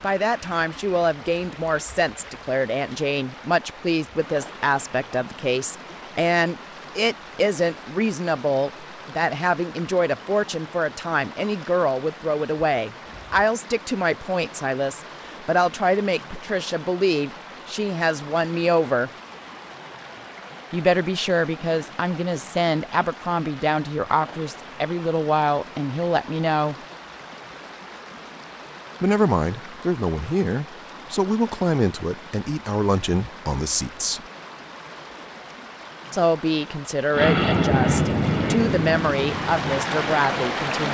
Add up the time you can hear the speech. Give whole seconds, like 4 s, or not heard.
35 s.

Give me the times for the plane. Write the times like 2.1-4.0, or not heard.
37.1-40.8.